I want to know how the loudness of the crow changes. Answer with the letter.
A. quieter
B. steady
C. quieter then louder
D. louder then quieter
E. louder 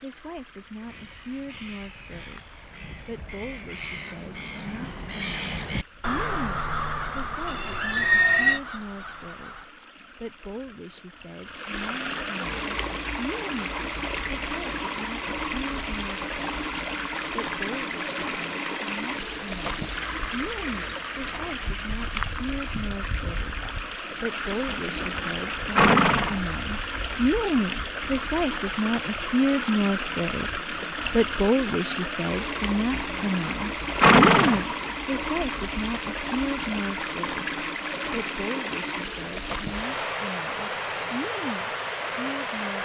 D.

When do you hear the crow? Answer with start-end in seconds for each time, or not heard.
0.8-9.7.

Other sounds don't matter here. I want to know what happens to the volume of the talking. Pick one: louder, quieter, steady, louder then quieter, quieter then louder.
louder then quieter.